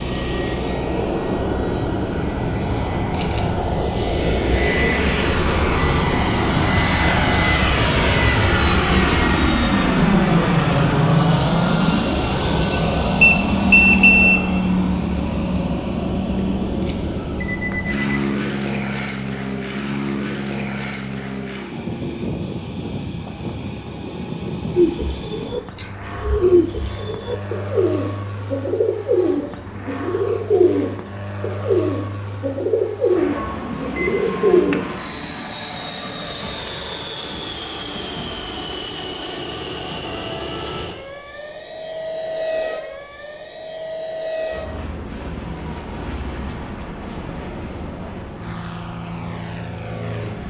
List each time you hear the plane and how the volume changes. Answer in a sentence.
The plane can be heard from 0.0 to 50.4 s, getting quieter.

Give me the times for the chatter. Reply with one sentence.
The chatter can't be heard in this clip.